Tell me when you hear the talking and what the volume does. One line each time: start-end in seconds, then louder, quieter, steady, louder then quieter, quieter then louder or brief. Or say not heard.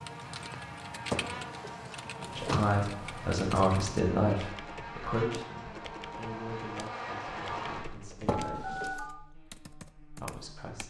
2.2-8.9 quieter
10.2-10.8 brief.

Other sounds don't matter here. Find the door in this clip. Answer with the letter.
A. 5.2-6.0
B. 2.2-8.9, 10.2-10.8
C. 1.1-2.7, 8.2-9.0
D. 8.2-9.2
C.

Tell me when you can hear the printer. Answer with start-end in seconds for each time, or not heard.
not heard.